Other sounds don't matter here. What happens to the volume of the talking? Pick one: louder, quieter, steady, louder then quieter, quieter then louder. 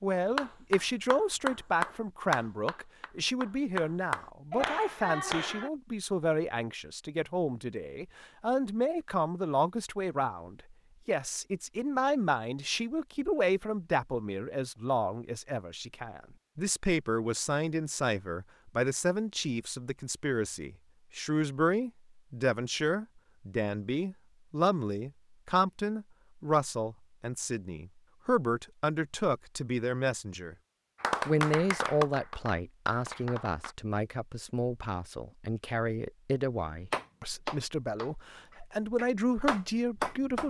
steady.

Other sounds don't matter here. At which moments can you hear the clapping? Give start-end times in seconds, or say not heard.
0.3-5.7, 31.0-33.8, 36.9-40.4.